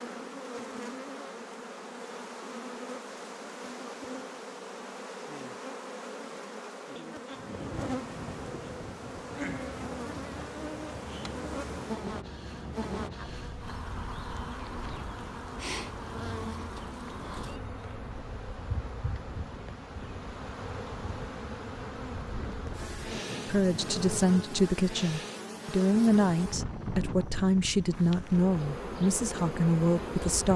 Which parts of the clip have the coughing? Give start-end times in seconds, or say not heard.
not heard.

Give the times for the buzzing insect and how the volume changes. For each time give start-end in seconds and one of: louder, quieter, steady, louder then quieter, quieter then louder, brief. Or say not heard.
0.0-30.5 steady.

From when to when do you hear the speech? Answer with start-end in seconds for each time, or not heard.
23.4-30.5.